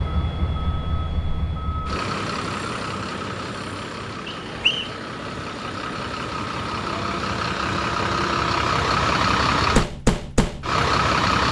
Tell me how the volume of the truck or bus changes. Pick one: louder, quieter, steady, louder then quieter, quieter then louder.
louder.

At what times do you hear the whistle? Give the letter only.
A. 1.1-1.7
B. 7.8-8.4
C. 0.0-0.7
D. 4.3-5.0
D.